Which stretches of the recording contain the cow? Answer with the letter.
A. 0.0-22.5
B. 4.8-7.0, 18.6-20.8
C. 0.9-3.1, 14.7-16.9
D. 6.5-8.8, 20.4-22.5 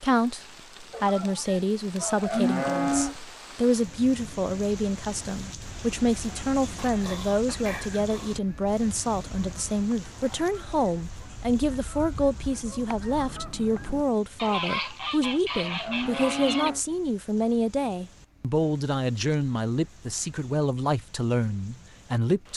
C.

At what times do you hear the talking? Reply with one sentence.
The talking can be heard from 0.0 to 22.5 s.